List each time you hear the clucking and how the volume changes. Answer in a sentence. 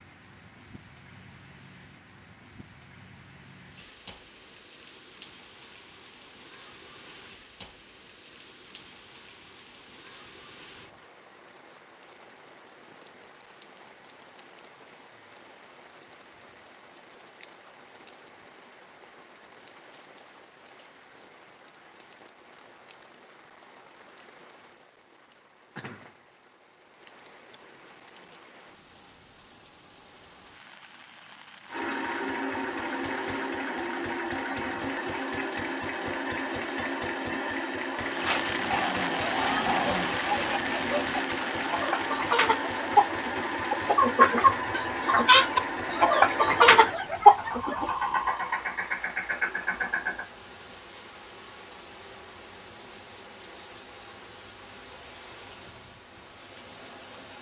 You can hear the clucking from 39.2 to 47.9 s, getting louder.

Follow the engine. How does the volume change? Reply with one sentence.
The loudness of the engine stays about the same.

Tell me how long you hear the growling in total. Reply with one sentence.
You can hear the growling for 2 seconds altogether.